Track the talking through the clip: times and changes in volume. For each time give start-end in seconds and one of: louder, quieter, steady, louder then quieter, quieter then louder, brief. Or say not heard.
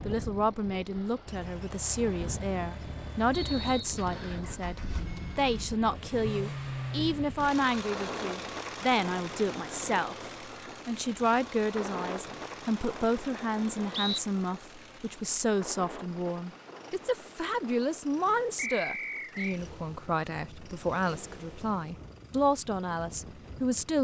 0.1-24.0 steady.